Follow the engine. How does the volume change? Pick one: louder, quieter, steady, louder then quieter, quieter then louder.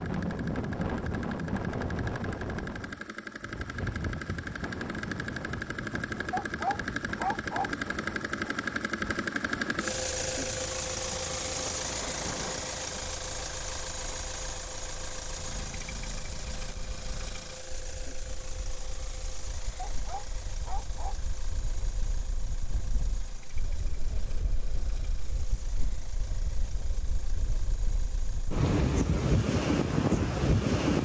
louder then quieter.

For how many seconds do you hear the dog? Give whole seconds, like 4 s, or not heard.
3 s.